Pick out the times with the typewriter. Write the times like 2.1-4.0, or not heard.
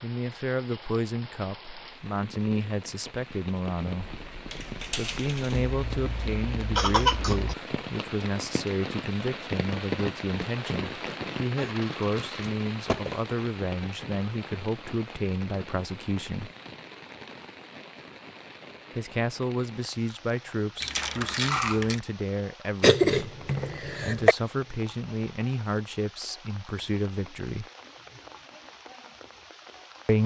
not heard.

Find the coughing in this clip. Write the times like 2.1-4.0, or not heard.
5.7-7.5, 22.8-24.4.